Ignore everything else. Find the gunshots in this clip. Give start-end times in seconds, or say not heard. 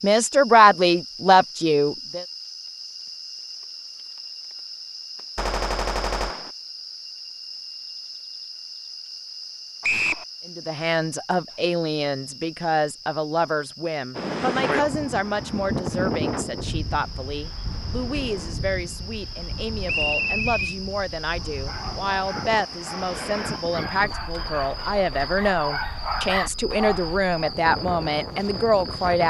5.3-6.5, 24.4-25.4.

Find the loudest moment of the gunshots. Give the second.
6 s.